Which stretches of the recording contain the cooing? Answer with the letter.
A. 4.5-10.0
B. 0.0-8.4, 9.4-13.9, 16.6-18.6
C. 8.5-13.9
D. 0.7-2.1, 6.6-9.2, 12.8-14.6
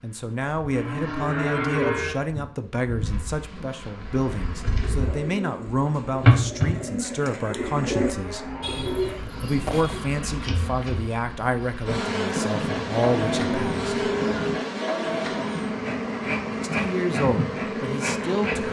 A.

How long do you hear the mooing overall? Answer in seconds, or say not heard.
6 s.